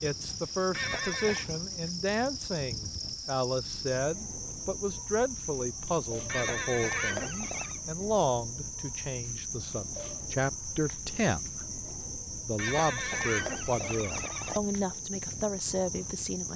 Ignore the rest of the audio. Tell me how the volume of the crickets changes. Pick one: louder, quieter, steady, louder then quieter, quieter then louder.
steady.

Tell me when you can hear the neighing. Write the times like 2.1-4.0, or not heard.
0.7-1.4, 6.2-7.8, 12.6-14.6.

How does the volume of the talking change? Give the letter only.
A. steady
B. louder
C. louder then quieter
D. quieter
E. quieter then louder
A.